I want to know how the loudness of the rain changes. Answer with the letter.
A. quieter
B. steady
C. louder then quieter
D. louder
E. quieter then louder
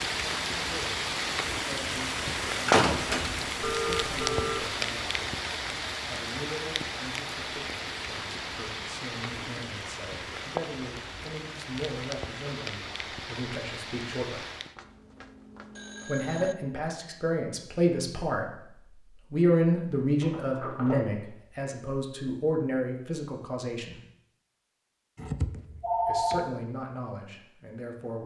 A.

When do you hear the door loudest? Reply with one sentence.
The volume of the door peaks at 3 seconds.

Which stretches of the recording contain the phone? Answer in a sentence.
The phone can be heard from 3.6 to 4.8 s, from 14.8 to 16.6 s and from 25.1 to 26.6 s.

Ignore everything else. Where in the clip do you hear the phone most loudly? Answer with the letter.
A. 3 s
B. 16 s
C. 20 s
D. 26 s
D.